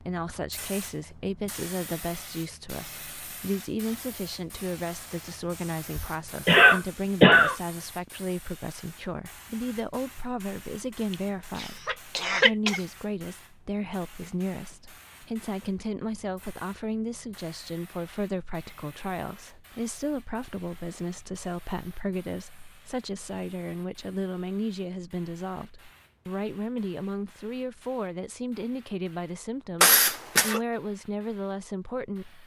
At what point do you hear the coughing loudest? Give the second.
7 s.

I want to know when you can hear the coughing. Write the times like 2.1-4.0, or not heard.
6.0-7.5, 11.1-12.8, 29.8-30.6.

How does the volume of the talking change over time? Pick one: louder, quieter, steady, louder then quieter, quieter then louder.
steady.